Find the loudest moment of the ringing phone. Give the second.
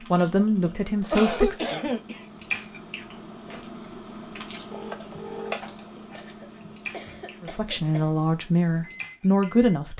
5 s.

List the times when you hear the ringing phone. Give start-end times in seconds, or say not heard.
4.7-6.8.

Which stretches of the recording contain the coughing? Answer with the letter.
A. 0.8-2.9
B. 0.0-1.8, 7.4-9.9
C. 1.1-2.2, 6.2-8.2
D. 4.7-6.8
C.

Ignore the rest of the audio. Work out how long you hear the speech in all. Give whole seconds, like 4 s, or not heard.
4 s.